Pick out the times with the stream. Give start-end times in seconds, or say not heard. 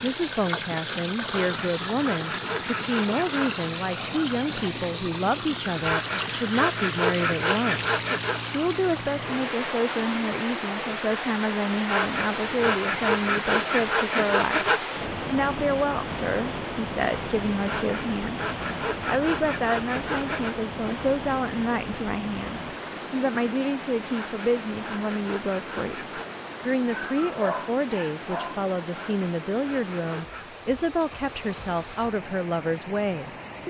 0.0-33.6.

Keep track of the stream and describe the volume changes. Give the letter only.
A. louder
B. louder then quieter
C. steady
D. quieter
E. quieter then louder
D.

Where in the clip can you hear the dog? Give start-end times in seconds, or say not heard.
26.9-28.6.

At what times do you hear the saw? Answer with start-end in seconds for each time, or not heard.
1.3-3.6, 5.8-8.4, 11.8-14.9, 17.6-20.6, 24.1-26.4, 28.9-30.6.